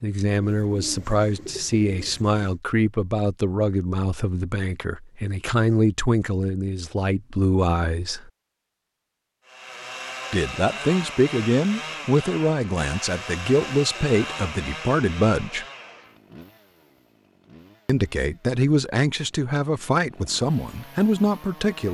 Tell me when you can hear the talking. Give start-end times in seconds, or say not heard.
0.0-8.3, 10.3-15.7, 17.9-21.8.